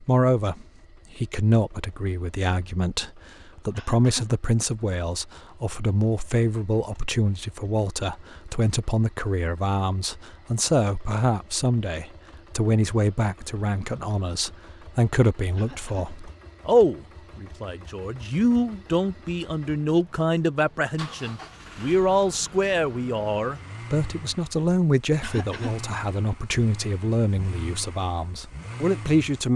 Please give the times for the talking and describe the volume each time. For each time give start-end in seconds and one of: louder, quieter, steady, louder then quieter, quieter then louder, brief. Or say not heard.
0.0-29.5 steady.